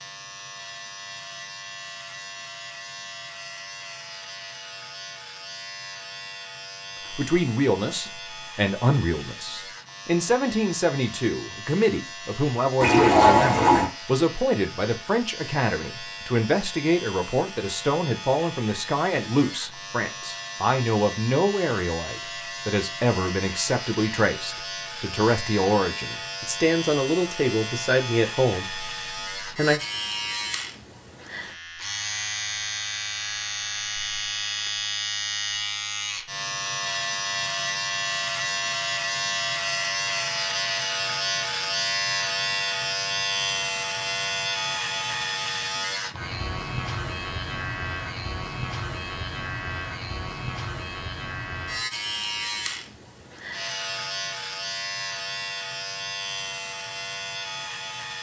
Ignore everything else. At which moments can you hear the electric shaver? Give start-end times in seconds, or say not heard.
0.0-58.1.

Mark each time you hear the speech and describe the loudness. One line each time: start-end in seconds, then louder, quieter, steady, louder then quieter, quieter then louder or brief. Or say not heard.
7.1-29.8 steady.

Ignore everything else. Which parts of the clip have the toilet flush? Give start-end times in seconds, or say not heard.
12.8-13.9.